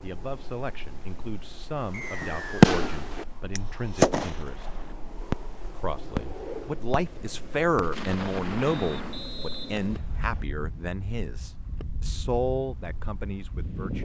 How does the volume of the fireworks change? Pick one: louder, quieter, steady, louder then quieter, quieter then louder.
quieter.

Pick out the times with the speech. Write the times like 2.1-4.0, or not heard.
0.0-4.8, 5.8-14.0.